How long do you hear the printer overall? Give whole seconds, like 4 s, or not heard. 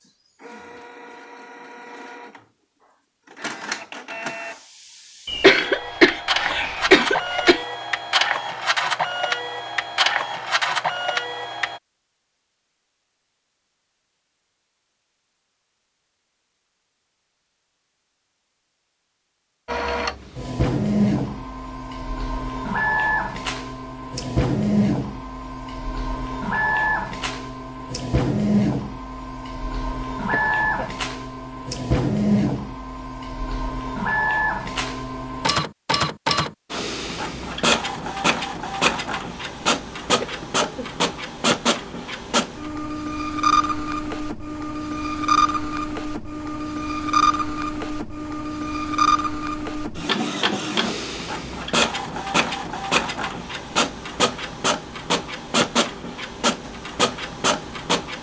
50 s.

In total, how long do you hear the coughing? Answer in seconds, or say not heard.
4 s.